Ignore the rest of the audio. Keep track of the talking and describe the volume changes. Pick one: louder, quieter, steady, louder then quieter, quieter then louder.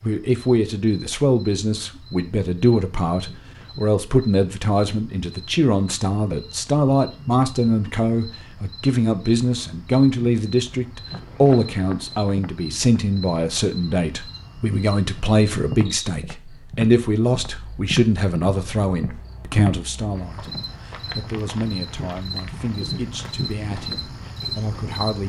quieter.